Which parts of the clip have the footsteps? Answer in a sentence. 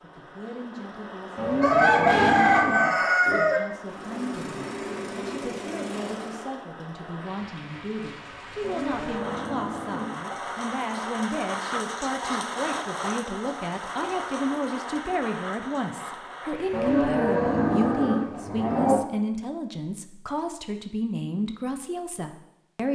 You can't hear the footsteps here.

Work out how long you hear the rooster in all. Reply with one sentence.
The rooster can be heard for 2 seconds in total.